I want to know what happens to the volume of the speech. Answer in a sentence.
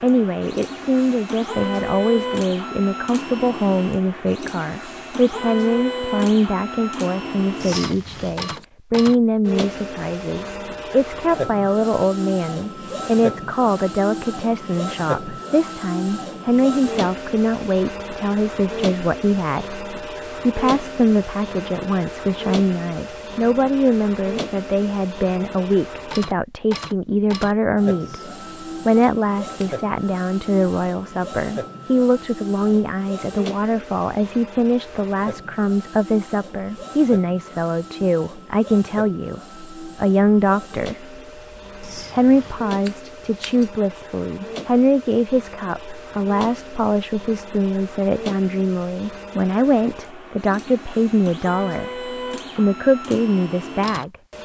The loudness of the speech stays about the same.